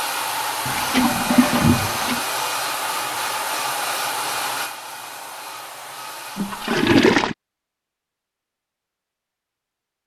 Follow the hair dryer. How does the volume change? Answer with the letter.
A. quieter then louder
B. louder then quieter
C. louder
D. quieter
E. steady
D.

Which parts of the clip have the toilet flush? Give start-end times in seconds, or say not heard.
0.7-2.2, 6.3-7.3.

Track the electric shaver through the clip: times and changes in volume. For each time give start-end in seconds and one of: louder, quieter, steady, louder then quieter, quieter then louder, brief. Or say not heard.
not heard.